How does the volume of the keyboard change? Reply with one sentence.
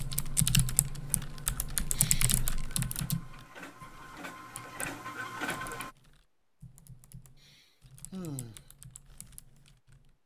The loudness of the keyboard goes down.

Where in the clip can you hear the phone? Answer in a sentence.
You can't hear the phone here.